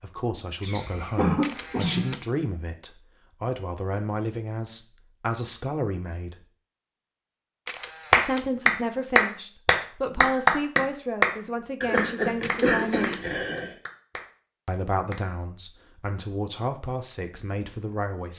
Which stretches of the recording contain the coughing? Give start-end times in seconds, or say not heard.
0.6-2.0, 11.8-13.8.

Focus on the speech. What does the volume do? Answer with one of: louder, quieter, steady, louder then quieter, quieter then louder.
steady.